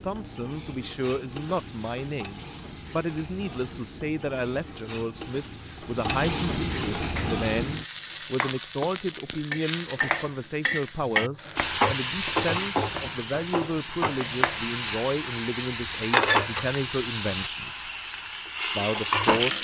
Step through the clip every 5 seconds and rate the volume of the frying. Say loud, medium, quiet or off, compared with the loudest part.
quiet, loud, loud, loud.